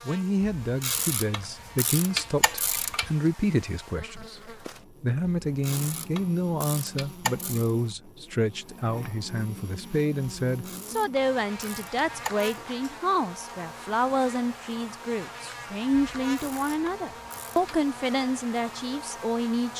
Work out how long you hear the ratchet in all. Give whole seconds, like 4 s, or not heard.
9 s.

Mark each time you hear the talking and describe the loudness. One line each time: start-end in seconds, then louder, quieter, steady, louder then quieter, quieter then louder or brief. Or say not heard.
0.1-19.7 steady.